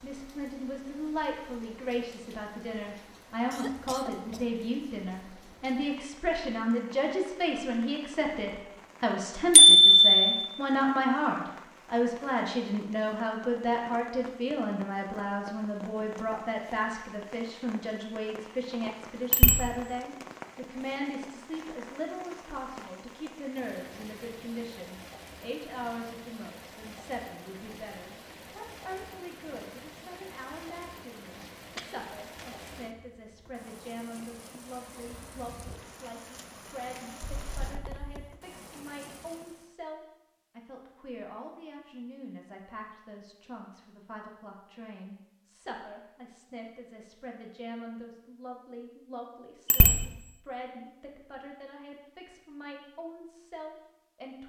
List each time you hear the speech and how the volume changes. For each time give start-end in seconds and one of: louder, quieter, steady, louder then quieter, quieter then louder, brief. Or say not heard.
0.0-54.4 quieter.